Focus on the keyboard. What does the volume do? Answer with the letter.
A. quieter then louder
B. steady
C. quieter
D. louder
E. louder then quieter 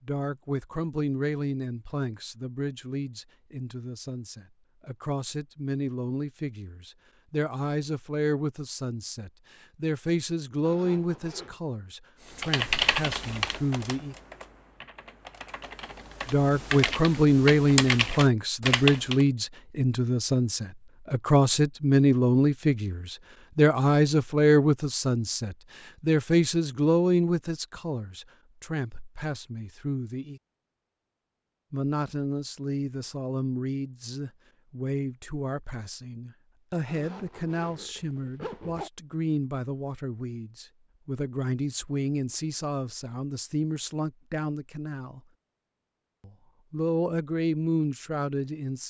A.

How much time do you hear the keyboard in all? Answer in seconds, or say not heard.
7 s.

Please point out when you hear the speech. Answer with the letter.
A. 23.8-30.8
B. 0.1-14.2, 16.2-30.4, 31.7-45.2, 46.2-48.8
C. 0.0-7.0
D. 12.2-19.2
B.